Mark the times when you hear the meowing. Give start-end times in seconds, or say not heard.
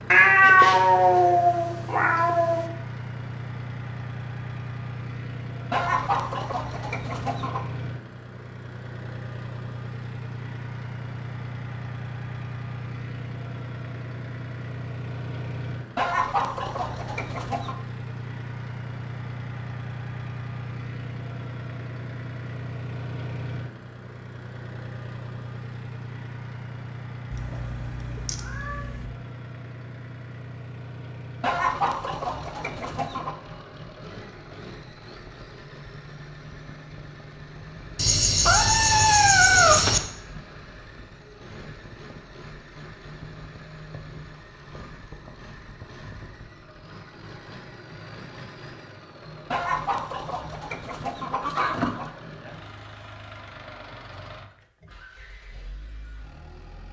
0.1-2.6, 27.3-29.1, 38.0-40.0.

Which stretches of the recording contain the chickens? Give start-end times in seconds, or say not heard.
5.7-7.7, 15.9-17.8, 31.4-33.4, 49.5-52.1.